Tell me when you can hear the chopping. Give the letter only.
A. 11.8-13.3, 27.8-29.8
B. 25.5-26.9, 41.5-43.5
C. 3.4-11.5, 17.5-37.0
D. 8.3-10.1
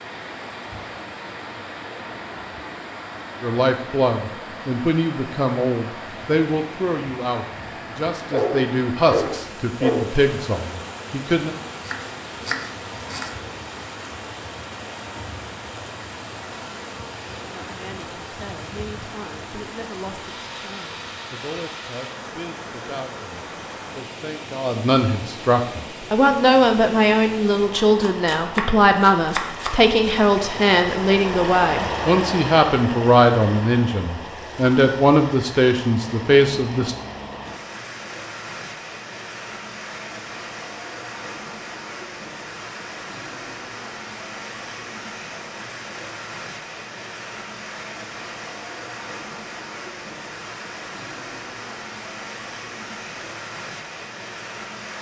A.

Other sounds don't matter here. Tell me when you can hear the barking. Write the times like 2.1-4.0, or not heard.
8.3-10.1.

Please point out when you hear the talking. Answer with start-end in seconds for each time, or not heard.
3.4-11.5, 17.5-37.0.